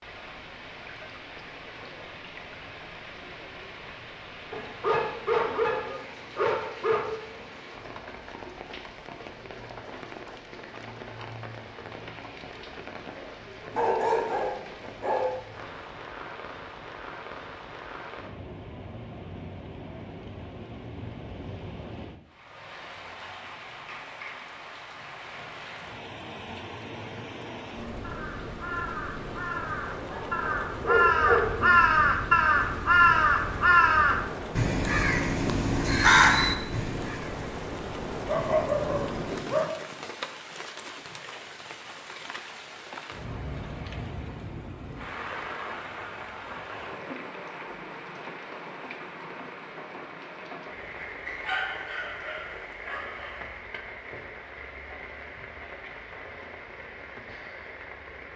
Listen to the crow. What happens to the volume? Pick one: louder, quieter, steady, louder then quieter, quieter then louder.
louder.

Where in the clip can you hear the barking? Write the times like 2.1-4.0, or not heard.
4.5-7.2, 13.7-15.3, 29.9-31.6, 38.2-39.8, 51.2-53.5.